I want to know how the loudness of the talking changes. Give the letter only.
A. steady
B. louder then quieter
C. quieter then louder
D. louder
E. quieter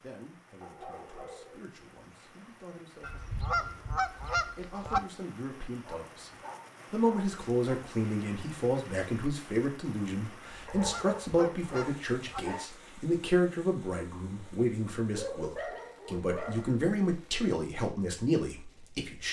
D.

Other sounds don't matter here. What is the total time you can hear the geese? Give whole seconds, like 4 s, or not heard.
4 s.